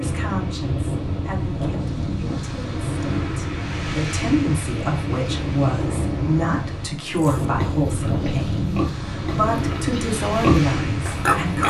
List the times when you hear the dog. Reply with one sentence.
The dog can't be heard in this clip.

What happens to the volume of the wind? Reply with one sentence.
The loudness of the wind stays about the same.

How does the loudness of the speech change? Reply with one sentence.
The volume of the speech goes up.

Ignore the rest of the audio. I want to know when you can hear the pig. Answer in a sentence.
The pig can be heard from 7.2 to 11.6 s.